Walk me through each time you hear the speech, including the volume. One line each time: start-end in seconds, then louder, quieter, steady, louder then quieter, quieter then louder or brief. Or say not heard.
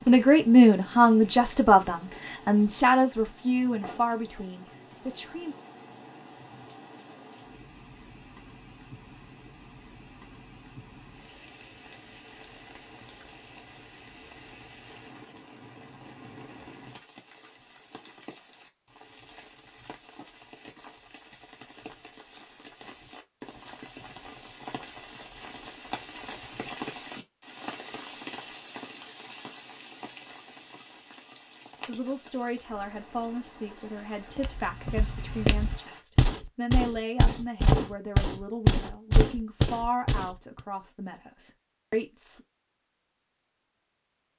0.1-5.5 quieter
31.9-42.4 steady.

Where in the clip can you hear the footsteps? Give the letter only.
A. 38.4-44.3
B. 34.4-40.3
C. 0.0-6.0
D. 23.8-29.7
B.